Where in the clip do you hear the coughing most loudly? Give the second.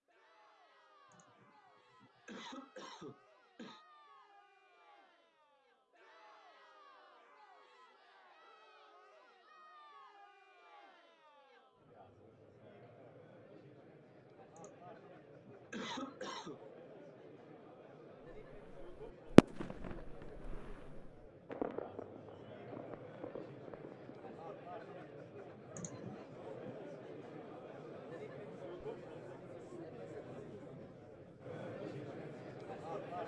16 s.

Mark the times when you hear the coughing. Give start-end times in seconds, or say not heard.
1.1-3.9, 14.6-16.6, 25.7-26.8.